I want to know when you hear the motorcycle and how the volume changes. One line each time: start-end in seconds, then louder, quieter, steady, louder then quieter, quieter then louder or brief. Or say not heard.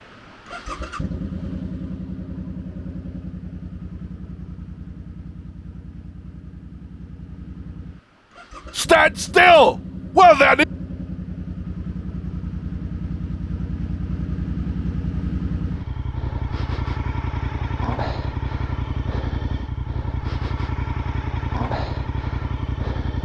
0.0-23.2 quieter then louder.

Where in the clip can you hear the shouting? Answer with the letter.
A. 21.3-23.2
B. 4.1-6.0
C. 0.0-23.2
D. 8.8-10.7
D.